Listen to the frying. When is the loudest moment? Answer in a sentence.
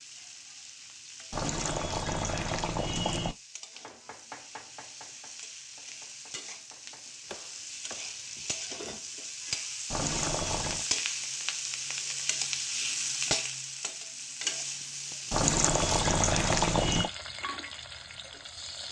The loudest moment of the frying is at 13 seconds.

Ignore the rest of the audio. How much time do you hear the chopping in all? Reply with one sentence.
You can hear the chopping for 5 seconds altogether.